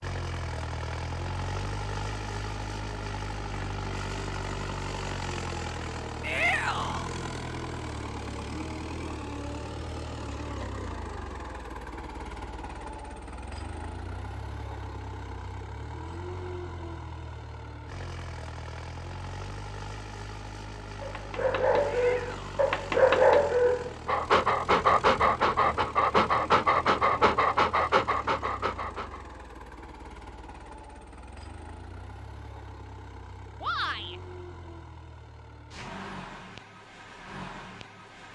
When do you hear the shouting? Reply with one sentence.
The shouting can be heard from 6.2 to 7.0 s, from 21.9 to 22.5 s and from 33.6 to 34.2 s.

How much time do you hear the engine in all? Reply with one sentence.
You can hear the engine for 38 seconds altogether.